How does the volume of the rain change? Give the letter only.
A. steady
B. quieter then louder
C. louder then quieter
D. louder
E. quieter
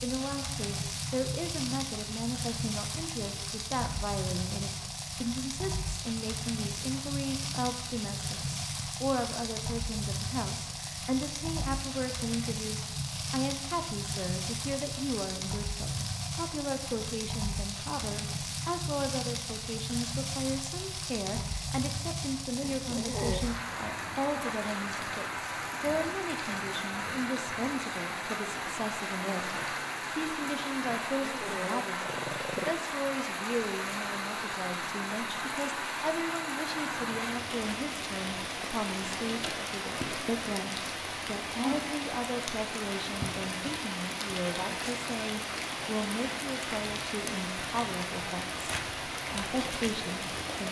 A.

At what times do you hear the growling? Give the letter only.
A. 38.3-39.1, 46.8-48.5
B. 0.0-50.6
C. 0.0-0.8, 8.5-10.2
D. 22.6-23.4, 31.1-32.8
D.